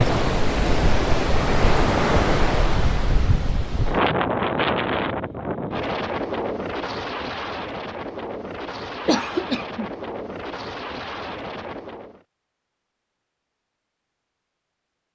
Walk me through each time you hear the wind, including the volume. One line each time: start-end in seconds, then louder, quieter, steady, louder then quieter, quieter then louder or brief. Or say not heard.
0.0-12.2 quieter.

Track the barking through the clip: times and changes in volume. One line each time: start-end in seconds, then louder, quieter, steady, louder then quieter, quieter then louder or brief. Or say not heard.
not heard.